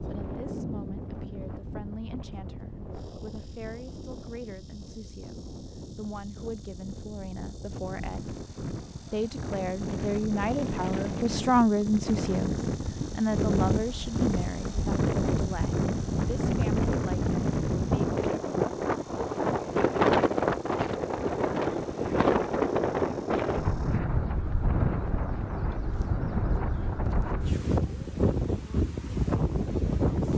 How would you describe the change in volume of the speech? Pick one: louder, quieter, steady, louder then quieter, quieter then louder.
louder then quieter.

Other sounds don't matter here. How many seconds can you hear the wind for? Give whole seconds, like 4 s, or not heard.
30 s.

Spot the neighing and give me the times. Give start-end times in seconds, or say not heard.
not heard.